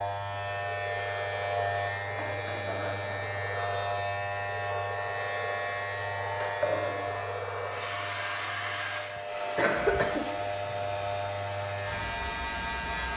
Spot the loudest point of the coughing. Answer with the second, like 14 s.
10 s.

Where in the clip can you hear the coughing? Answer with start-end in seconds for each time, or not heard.
9.2-11.1.